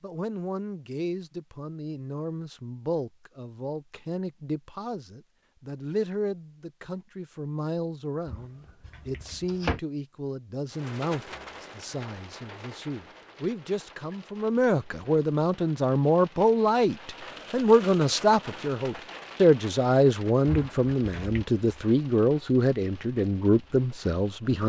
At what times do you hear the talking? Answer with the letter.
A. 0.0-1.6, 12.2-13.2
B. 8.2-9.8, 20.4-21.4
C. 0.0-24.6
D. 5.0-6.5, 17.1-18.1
C.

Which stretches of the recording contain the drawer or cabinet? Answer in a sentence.
You can hear the drawer or cabinet from 8.2 to 9.8 s and from 20.4 to 21.4 s.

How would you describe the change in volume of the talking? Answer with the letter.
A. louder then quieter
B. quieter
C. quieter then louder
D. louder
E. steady
D.